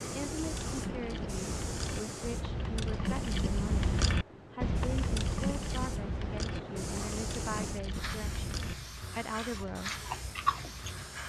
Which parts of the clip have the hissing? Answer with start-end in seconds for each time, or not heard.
0.0-11.2.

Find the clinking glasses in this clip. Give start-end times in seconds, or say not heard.
not heard.